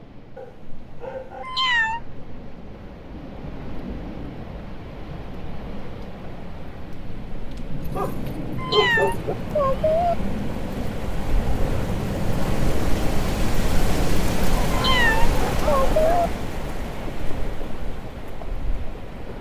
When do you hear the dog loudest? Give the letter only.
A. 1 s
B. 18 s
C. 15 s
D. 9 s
D.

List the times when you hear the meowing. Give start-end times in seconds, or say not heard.
1.4-2.0, 8.6-10.2, 14.7-16.3.